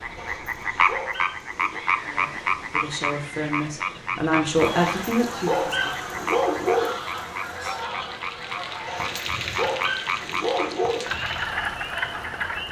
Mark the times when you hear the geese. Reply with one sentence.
You can hear the geese from 4.3 to 9.1 s.